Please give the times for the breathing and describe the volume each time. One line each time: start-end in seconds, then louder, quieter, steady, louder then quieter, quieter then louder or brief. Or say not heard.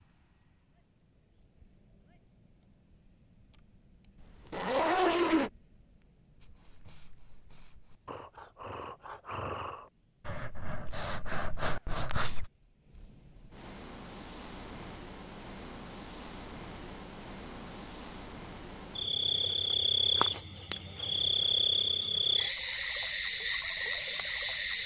6.4-12.5 louder.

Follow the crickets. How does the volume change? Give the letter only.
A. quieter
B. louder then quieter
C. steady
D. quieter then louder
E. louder
E.